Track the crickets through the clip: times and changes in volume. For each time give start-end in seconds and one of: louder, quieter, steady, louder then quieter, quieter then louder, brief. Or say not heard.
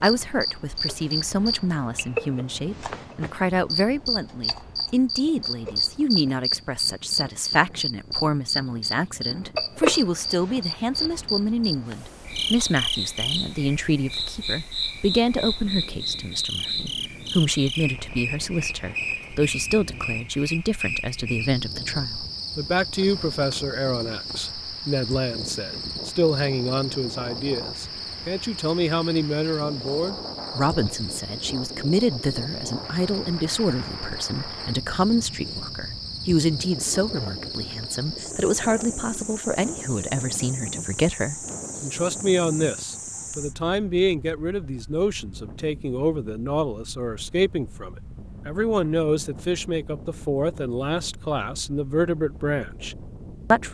0.0-43.5 quieter.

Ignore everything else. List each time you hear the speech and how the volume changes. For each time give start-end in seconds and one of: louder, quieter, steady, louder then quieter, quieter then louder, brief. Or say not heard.
0.0-53.7 steady.